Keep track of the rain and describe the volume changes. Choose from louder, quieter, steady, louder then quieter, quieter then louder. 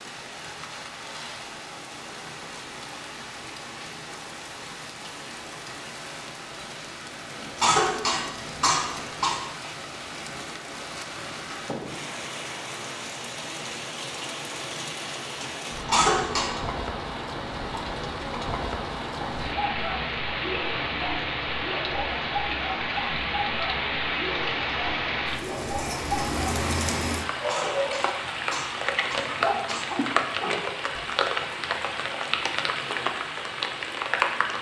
louder.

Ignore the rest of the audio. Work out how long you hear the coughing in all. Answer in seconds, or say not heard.
5 s.